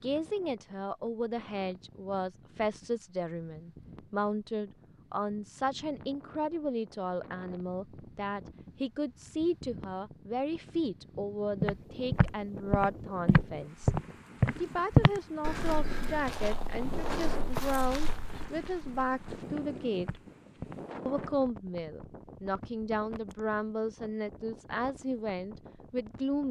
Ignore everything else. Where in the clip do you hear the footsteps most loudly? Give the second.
15 s.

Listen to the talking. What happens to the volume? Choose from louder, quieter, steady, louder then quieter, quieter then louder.
steady.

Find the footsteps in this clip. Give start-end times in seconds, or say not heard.
11.6-21.3.